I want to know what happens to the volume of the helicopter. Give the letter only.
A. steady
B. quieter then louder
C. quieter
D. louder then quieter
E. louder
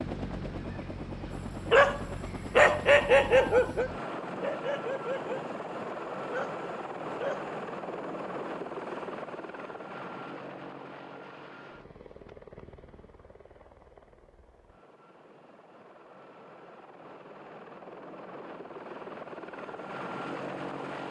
B.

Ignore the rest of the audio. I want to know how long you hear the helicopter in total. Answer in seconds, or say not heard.
21 s.